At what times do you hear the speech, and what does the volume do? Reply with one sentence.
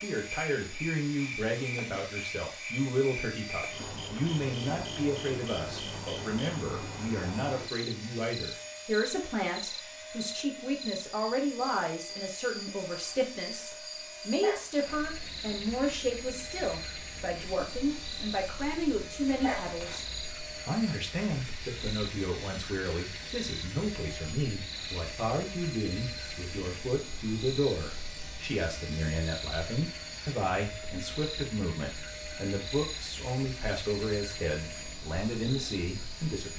The speech can be heard from 0.0 to 20.1 s, at a steady volume; and from 20.6 to 36.5 s, at a steady volume.